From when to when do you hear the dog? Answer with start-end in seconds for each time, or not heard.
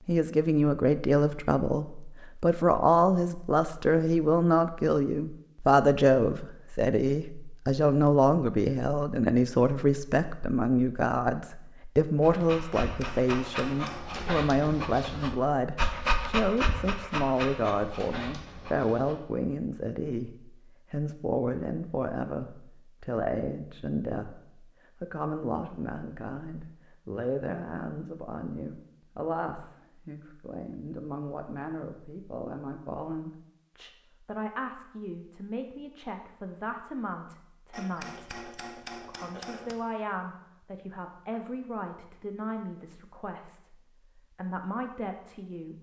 12.2-19.2.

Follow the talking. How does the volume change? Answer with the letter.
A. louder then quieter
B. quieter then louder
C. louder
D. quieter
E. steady
D.